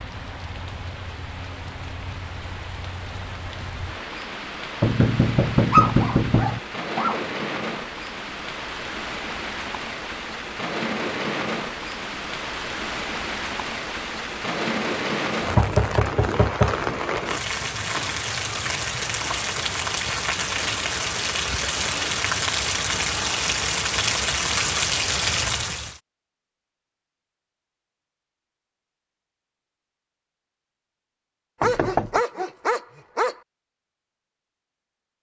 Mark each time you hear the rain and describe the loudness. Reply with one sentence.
You can hear the rain from 0.0 to 26.0 s, getting louder.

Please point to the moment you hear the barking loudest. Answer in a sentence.
The volume of the barking peaks at 6 seconds.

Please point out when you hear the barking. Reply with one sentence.
The barking can be heard from 5.7 to 7.2 s and from 31.6 to 33.4 s.